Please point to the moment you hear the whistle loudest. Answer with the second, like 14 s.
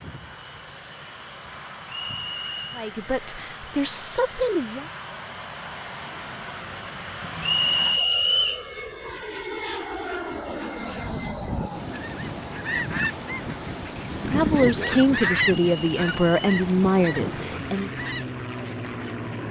8 s.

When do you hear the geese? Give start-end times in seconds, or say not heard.
9.9-18.3.